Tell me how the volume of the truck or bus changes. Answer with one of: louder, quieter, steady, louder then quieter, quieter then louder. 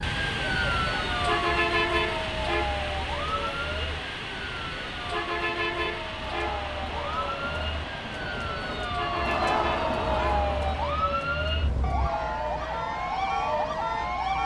quieter.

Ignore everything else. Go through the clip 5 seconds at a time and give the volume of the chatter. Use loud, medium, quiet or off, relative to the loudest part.
medium, loud, loud.